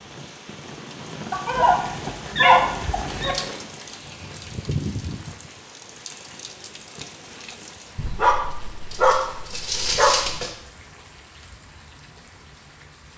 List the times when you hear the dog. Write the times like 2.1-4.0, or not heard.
1.3-3.4, 8.0-10.5.